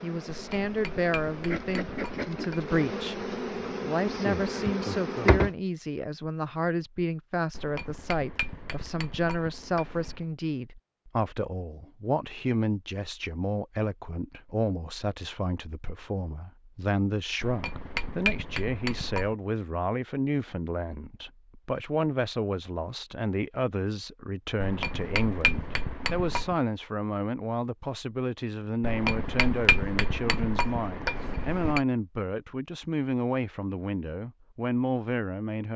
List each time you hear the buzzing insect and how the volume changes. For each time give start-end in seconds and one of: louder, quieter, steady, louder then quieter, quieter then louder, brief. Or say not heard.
0.0-5.5 louder.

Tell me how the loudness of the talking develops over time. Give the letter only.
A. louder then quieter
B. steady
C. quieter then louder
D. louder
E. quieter
B.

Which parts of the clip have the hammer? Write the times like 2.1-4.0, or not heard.
0.3-2.8, 7.5-10.2, 17.4-19.4, 24.6-26.6, 28.8-31.8.